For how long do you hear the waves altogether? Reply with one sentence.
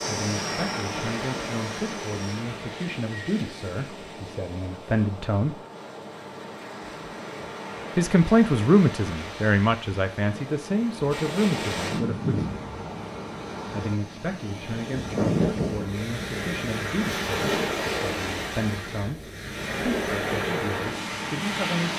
You can hear the waves for 22 seconds altogether.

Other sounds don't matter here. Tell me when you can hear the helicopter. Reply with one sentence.
You can hear the helicopter from 0.0 to 2.4 s.